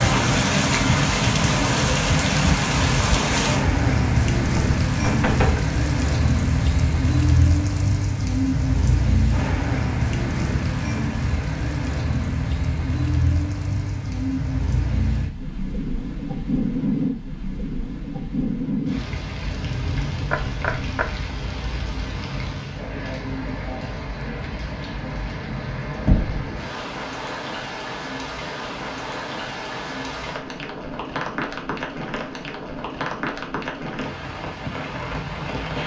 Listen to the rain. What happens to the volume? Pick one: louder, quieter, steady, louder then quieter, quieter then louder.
quieter.